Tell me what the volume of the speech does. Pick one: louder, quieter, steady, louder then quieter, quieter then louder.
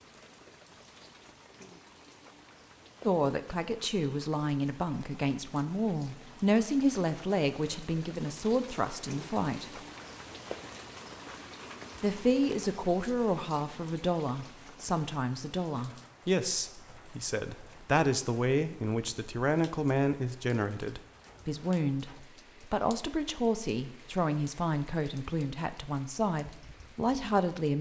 steady.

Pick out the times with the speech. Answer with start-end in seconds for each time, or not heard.
3.0-9.8, 12.0-27.7.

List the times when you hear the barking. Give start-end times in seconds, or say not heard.
not heard.